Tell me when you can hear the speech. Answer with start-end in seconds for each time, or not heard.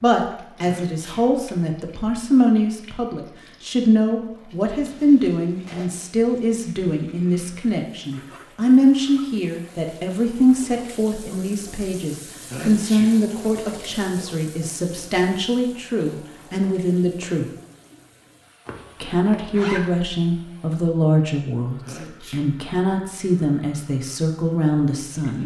0.0-17.4, 19.0-25.4.